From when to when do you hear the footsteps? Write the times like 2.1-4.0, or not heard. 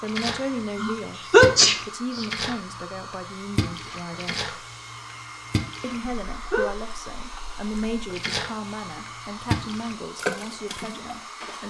not heard.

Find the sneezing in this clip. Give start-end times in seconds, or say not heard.
0.8-2.2, 6.0-6.7.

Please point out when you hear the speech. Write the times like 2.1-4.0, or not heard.
0.0-4.5, 5.8-11.6.